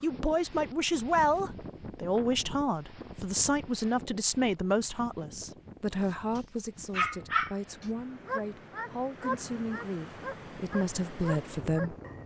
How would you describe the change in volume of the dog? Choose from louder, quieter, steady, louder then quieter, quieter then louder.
quieter.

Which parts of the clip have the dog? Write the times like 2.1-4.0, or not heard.
6.3-12.2.